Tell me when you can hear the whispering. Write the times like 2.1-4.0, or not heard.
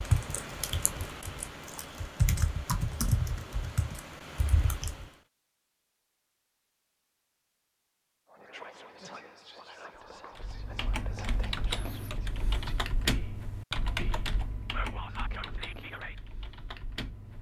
8.3-16.1.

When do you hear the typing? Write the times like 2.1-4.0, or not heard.
0.0-5.1, 10.3-17.3.